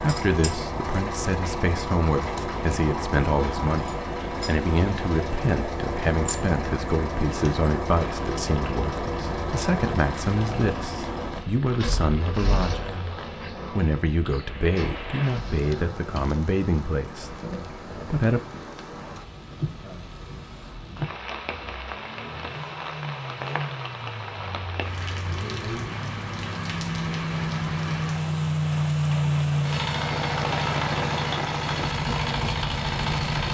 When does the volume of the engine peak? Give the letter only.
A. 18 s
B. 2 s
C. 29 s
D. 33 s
C.